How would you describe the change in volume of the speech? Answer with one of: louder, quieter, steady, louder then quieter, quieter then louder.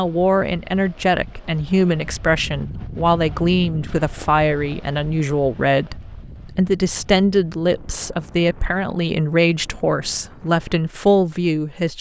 steady.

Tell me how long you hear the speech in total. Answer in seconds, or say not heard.
12 s.